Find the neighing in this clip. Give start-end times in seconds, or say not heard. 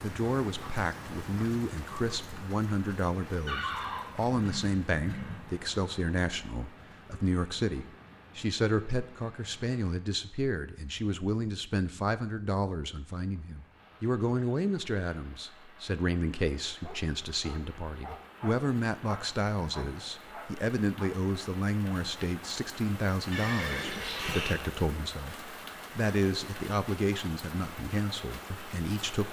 3.5-5.4, 23.3-24.6.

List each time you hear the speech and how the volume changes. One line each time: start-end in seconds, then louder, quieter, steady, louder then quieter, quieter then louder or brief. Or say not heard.
0.0-29.2 steady.